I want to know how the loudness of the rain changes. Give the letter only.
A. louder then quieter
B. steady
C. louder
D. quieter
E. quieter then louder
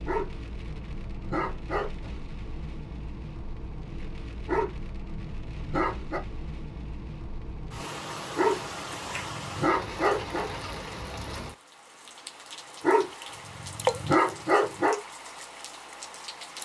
C.